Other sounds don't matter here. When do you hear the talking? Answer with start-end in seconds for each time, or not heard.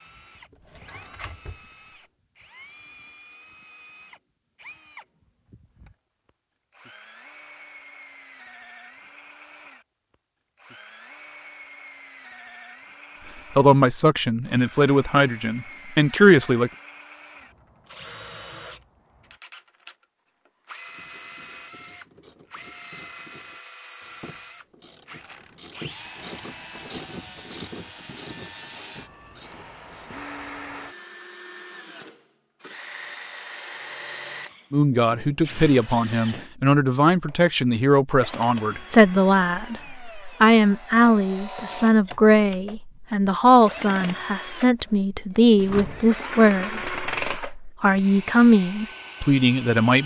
13.6-16.7, 34.7-50.0.